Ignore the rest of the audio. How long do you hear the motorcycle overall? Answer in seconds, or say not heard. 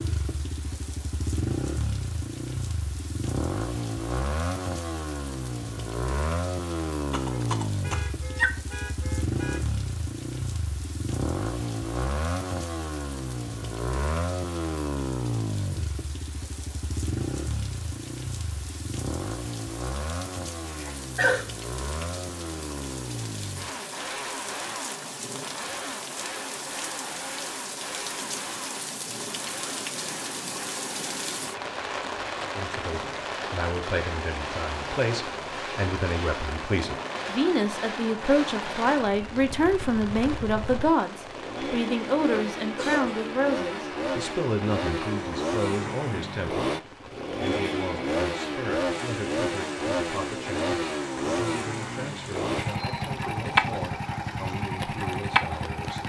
56 s.